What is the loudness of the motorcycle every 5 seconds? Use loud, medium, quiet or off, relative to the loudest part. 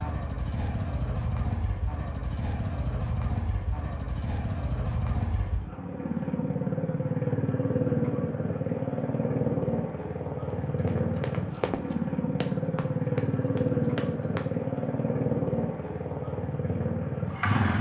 medium, loud, loud, loud.